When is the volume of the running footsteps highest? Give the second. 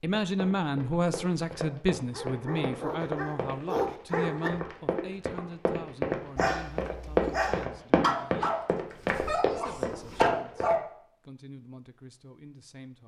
7 s.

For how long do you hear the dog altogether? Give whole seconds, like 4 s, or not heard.
7 s.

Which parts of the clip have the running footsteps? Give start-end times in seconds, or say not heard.
0.1-10.8.